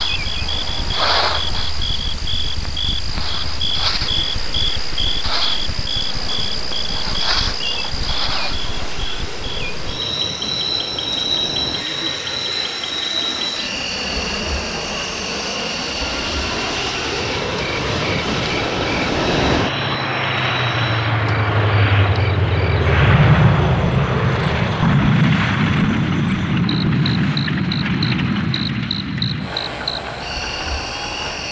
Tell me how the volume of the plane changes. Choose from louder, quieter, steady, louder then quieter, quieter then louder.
louder.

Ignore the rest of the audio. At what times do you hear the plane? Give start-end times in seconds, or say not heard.
0.1-31.4.